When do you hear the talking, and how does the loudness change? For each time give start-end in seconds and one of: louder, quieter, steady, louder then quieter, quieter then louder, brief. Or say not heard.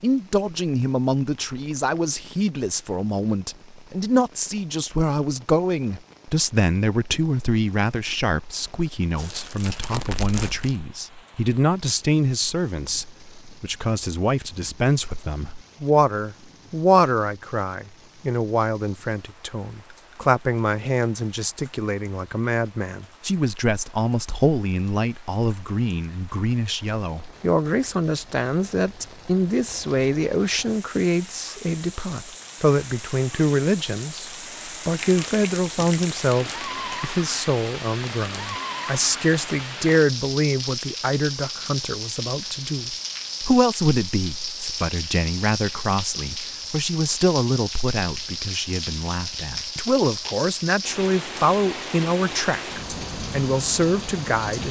0.0-54.6 steady.